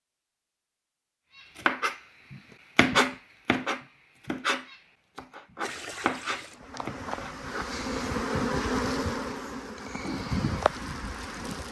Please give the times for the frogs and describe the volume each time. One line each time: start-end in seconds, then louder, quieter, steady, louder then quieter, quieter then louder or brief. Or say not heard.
not heard.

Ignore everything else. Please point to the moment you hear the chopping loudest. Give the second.
3 s.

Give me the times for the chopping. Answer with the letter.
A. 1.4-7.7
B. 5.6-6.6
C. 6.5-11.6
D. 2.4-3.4
A.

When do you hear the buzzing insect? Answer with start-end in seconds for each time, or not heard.
6.5-11.6.